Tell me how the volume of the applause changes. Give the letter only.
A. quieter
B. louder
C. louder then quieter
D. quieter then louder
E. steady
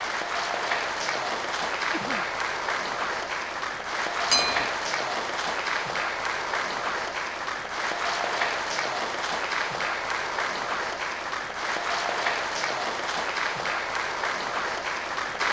E.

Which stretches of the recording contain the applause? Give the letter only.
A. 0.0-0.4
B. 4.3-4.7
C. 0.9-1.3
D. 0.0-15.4
D.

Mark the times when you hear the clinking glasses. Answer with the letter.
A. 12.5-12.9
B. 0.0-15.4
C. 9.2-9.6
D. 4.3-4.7
D.